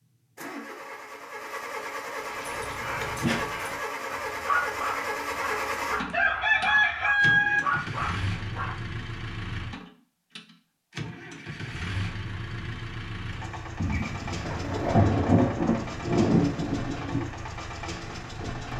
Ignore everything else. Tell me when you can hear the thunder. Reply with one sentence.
The thunder can be heard from 13.8 to 17.3 s.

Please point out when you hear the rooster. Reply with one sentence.
The rooster can be heard from 6.1 to 7.6 s.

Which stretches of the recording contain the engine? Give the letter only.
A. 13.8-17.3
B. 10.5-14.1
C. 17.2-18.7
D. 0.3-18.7
D.